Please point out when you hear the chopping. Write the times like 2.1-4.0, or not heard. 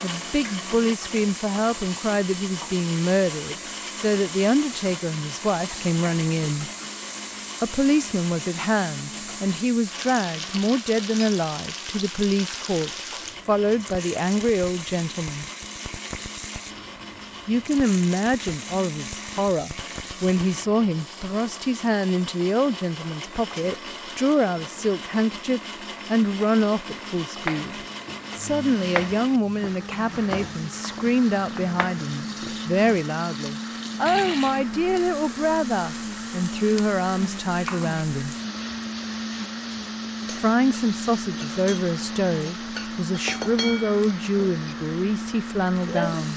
27.4-32.8.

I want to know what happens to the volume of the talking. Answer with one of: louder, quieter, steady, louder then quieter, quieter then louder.
steady.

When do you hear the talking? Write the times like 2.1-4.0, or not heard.
0.0-6.7, 7.6-15.4, 17.4-38.4, 40.3-46.3.